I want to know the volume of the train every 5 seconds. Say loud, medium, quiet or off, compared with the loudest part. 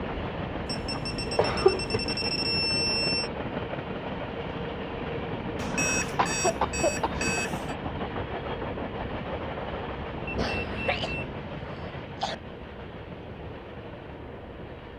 loud, loud, medium.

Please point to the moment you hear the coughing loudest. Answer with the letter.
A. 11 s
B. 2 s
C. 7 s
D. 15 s
B.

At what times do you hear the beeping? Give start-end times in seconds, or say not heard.
0.7-3.3, 5.5-7.8, 10.2-11.3.